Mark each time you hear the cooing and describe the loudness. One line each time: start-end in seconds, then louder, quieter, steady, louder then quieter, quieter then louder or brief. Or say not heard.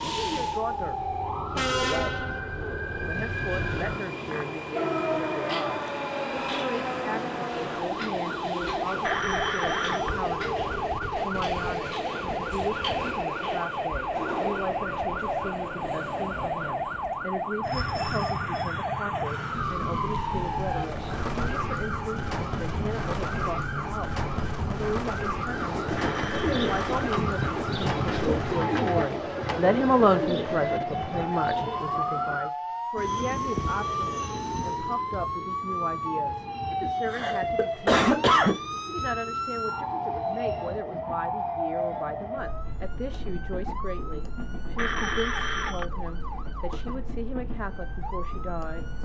25.6-31.8 quieter.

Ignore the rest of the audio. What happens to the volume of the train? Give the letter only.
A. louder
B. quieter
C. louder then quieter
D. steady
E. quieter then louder
B.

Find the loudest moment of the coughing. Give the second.
38 s.